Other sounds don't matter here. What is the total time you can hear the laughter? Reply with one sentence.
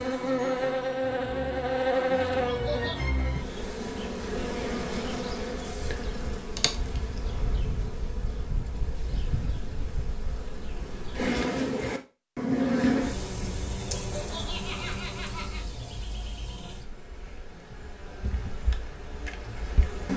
The laughter can be heard for 2 seconds in total.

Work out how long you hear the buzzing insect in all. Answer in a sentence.
You can hear the buzzing insect for 20 seconds altogether.